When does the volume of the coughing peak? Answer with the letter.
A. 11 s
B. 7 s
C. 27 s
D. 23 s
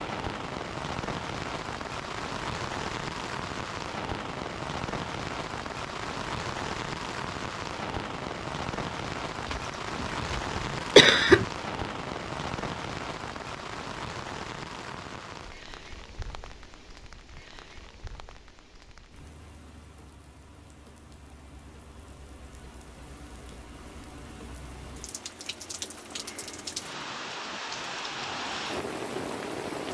A.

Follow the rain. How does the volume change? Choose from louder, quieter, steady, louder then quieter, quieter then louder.
quieter then louder.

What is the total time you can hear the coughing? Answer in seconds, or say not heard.
2 s.